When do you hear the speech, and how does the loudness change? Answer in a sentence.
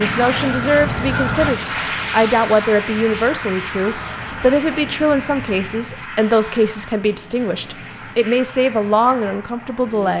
You can hear the speech from 0.0 to 10.1 s, at a steady volume.